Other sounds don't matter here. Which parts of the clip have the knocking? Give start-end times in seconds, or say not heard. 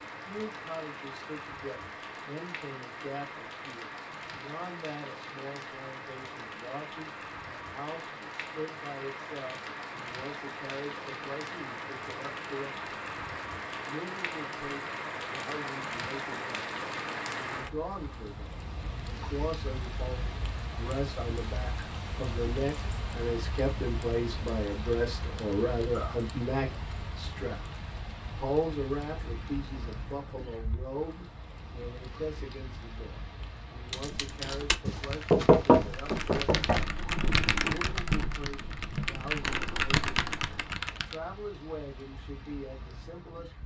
34.9-36.9.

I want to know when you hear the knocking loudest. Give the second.
36 s.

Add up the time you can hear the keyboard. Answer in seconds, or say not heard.
7 s.